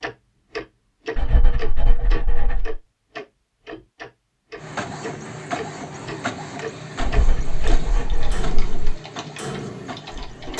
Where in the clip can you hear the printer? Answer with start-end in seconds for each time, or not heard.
4.5-10.5.